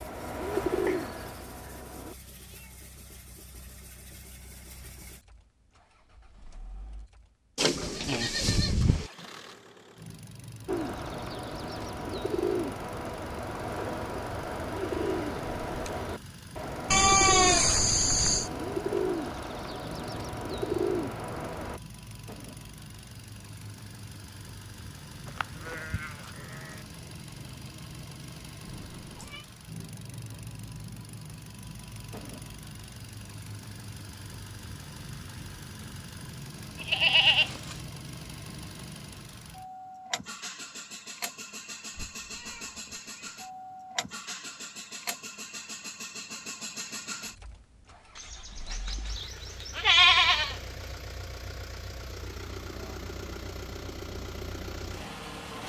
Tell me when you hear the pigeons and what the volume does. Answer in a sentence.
The pigeons can be heard briefly from 0.0 to 2.1 s; and from 10.7 to 21.8 s, at a steady volume.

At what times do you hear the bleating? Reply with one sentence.
The bleating can be heard from 7.5 to 9.1 s, from 16.9 to 18.5 s, from 25.2 to 26.8 s, from 36.8 to 37.8 s and from 48.1 to 50.6 s.